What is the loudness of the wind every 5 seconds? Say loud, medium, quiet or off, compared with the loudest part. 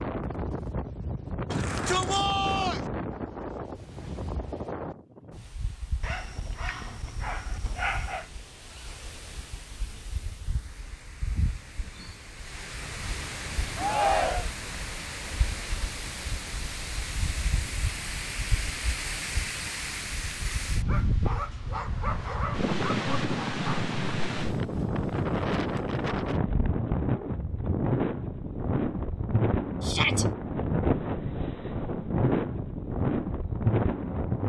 medium, quiet, medium, medium, loud, loud, loud.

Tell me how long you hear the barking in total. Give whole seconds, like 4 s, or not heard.
5 s.